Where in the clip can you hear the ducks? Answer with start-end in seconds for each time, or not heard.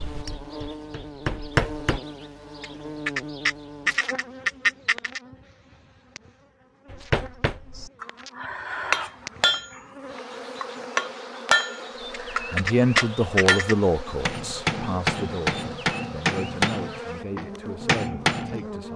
2.6-5.2, 12.1-13.8.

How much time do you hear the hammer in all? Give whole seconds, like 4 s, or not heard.
14 s.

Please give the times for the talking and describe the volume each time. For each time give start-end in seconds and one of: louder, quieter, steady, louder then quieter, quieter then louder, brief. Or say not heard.
12.3-18.9 quieter.